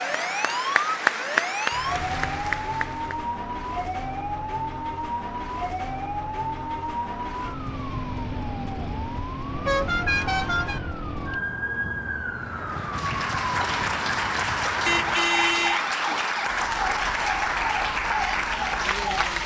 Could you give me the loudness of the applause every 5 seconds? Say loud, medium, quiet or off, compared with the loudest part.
loud, off, loud, loud.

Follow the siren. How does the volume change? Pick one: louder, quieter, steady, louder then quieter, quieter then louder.
steady.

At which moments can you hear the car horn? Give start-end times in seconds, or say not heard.
1.7-2.5, 9.7-10.8, 14.8-15.8.